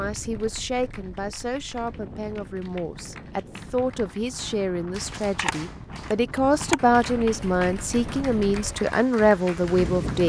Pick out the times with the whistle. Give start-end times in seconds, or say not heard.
not heard.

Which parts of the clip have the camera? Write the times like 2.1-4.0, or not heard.
5.3-6.8.